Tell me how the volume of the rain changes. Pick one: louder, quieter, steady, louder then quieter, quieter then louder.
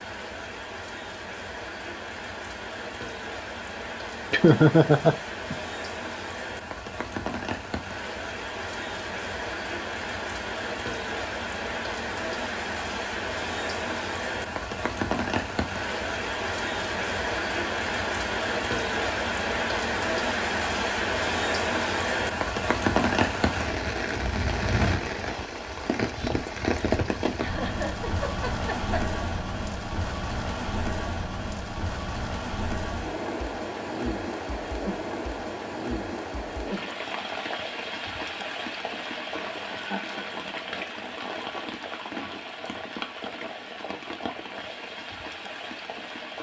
louder then quieter.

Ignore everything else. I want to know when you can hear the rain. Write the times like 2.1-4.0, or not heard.
0.0-46.3.